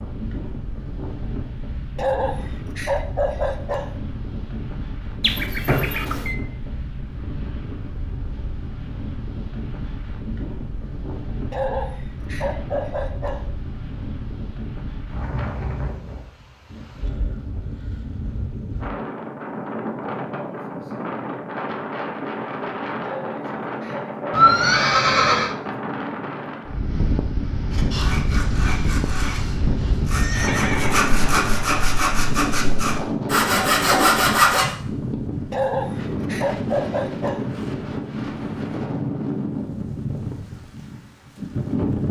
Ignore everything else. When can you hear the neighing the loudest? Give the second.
25 s.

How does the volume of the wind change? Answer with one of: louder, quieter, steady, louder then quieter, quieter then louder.
louder.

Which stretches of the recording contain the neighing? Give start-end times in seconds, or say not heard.
5.2-6.3, 24.3-25.6, 30.1-31.0.